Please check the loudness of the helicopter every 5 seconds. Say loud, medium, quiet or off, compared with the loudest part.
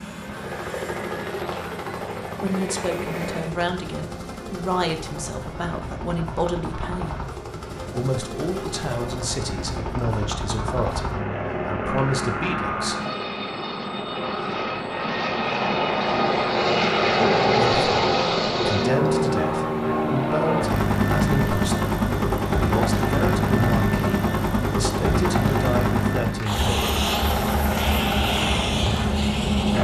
medium, quiet, medium, loud, loud, loud.